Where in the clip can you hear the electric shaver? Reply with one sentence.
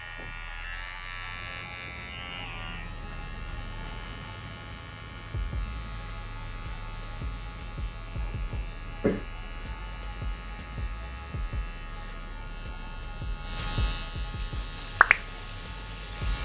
You can hear the electric shaver from 0.0 to 16.4 s.